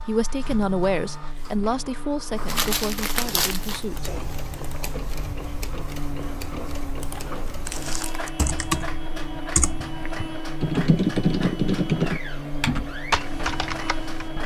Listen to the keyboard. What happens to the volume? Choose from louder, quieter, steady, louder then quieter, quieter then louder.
louder.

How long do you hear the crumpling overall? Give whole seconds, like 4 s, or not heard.
2 s.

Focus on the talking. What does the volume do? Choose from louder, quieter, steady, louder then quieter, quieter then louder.
quieter.